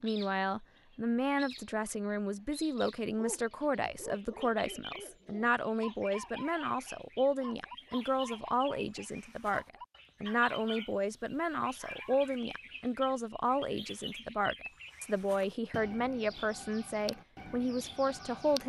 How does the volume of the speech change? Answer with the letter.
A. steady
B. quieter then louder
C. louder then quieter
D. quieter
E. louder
A.